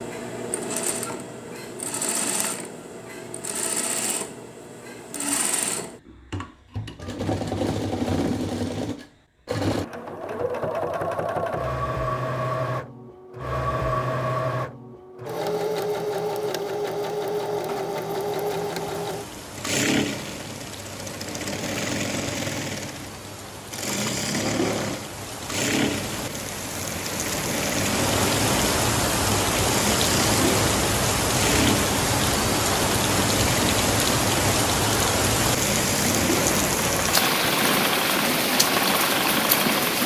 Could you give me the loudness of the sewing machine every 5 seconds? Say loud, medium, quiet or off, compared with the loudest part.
medium, loud, loud, loud, loud, loud, loud, loud.